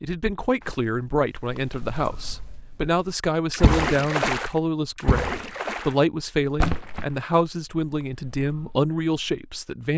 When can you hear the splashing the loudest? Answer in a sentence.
The loudest moment of the splashing is at 4 seconds.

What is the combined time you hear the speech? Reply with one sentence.
The speech can be heard for 10 seconds in total.